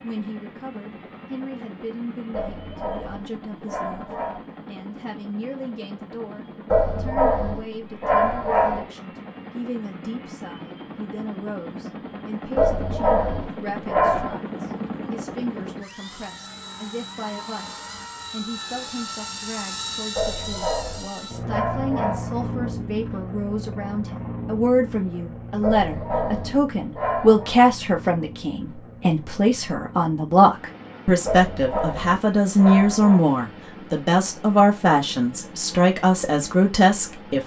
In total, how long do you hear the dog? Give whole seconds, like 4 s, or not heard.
12 s.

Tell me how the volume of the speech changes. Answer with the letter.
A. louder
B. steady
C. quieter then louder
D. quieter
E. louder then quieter
A.